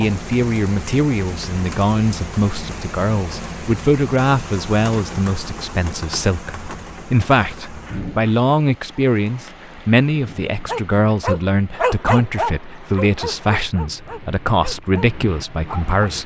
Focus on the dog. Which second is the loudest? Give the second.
12 s.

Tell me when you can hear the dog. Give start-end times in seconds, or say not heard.
10.7-16.1.